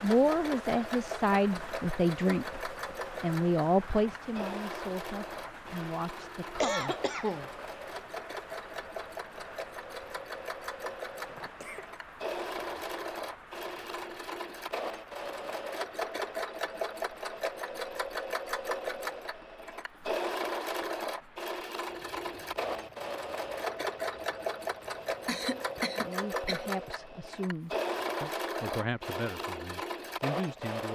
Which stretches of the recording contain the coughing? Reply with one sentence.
The coughing can be heard from 6.6 to 7.5 s, from 11.2 to 11.9 s and from 25.2 to 26.7 s.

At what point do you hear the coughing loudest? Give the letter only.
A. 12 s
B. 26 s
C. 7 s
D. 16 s
C.